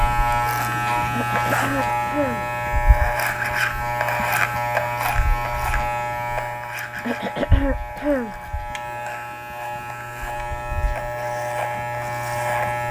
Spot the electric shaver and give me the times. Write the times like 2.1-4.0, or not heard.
0.0-12.8.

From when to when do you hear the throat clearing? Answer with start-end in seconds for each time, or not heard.
1.1-2.5, 7.0-8.3.